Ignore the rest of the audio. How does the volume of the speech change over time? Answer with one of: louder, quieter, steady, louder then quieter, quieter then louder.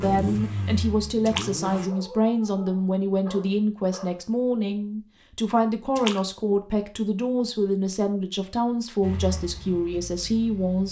steady.